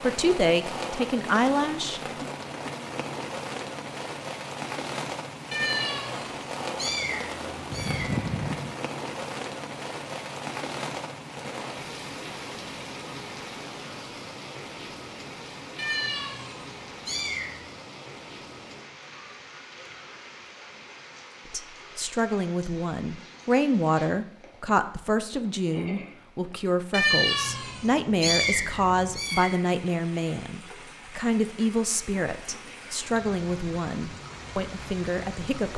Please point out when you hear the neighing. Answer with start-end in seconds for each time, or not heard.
7.7-8.8.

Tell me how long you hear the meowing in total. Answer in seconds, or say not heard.
7 s.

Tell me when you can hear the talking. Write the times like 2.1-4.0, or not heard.
0.0-2.2, 21.5-35.7.